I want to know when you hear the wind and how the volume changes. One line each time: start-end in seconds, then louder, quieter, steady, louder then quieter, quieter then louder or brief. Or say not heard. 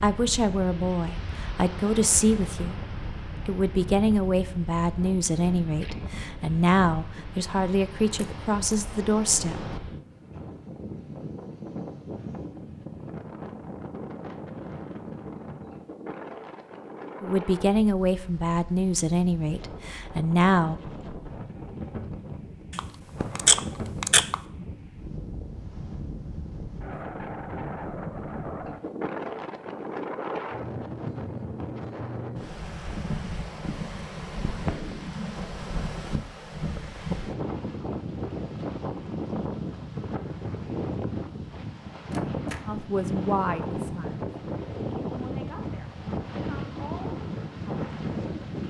0.0-48.6 louder.